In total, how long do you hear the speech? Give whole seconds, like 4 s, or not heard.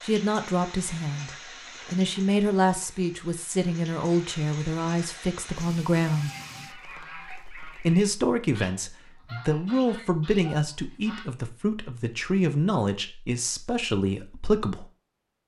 13 s.